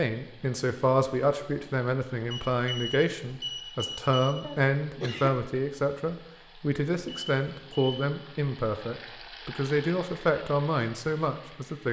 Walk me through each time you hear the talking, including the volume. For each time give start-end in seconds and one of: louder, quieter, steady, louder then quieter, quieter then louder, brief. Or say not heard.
0.0-11.8 steady.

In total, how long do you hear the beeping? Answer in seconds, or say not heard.
3 s.